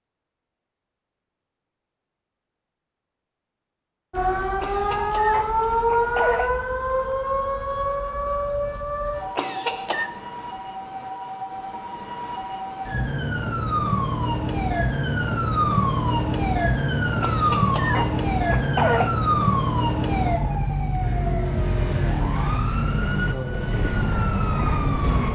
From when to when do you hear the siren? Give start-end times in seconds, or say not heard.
4.1-25.3.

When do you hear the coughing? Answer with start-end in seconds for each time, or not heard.
4.6-6.5, 9.3-10.1, 17.2-19.1.